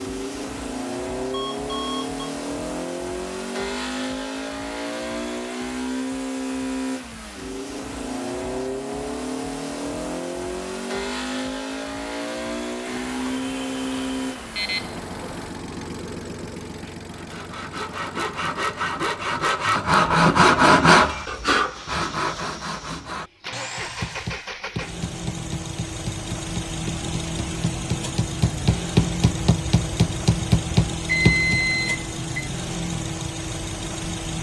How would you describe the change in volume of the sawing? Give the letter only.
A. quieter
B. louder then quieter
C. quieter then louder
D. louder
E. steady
B.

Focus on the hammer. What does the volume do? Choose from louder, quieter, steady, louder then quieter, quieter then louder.
louder.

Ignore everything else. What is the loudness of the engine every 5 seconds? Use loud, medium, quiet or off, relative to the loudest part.
loud, loud, loud, medium, medium, loud, loud.